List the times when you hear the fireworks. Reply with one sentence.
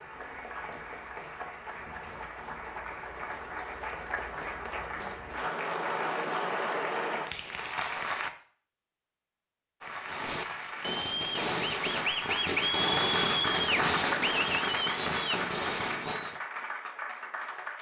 You can hear the fireworks from 10.0 to 16.4 s.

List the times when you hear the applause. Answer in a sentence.
You can hear the applause from 0.0 to 8.3 s and from 9.8 to 17.7 s.